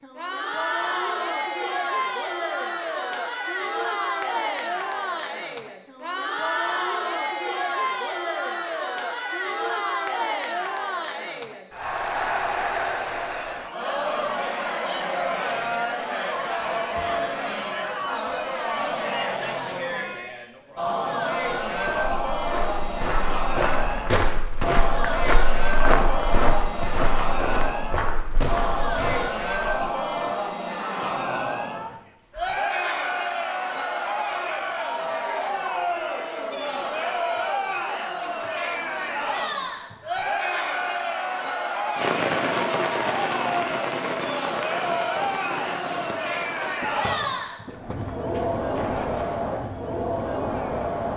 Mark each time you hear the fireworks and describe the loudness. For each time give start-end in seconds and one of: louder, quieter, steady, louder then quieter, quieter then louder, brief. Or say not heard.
42.0-49.4 quieter.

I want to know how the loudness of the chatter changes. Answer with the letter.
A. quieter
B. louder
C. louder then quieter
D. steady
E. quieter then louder
D.